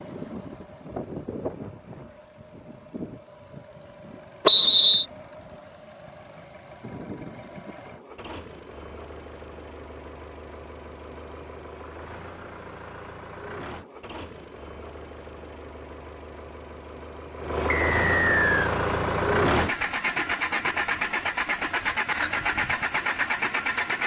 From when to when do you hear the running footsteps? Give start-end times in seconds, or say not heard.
not heard.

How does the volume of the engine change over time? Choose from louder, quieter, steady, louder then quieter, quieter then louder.
louder.